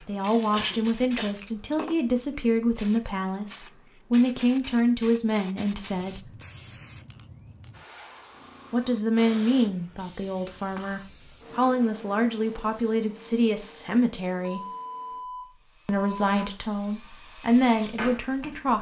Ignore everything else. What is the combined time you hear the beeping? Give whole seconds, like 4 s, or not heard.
2 s.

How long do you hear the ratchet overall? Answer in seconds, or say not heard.
not heard.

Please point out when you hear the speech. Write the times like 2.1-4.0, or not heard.
0.1-6.3, 8.7-14.6, 15.8-18.7.